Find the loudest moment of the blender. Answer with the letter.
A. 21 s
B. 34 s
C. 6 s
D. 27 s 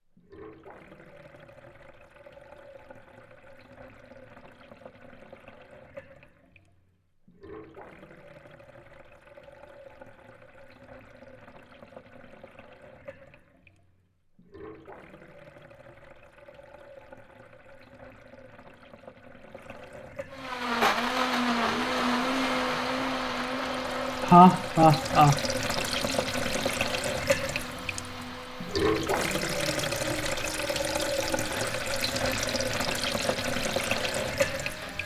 A.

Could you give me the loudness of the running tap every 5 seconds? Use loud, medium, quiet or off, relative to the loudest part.
quiet, quiet, quiet, quiet, medium, loud, loud.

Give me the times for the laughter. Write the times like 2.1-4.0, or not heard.
24.2-25.4.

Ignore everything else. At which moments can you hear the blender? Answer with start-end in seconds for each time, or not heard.
20.3-35.0.